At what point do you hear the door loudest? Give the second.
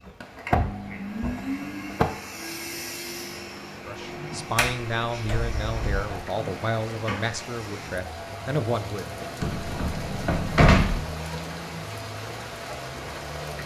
11 s.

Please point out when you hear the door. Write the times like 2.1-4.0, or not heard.
0.5-2.0, 4.5-6.1, 9.4-11.1.